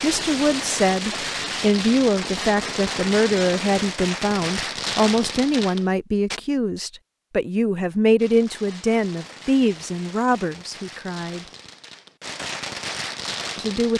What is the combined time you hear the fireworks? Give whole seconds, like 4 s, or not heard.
12 s.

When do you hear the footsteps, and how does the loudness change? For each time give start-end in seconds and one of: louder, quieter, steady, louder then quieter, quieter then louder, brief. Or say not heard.
not heard.